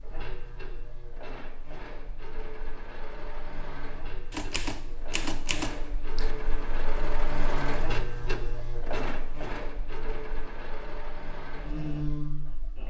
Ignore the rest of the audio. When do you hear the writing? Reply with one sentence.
The writing can't be heard in this clip.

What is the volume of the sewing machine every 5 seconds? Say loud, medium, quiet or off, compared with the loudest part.
medium, loud, medium.